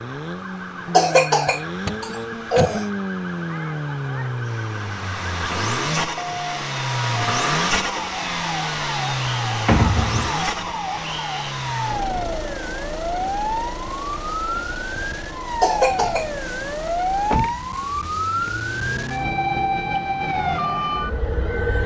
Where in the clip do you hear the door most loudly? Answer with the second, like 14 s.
10 s.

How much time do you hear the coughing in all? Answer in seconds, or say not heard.
3 s.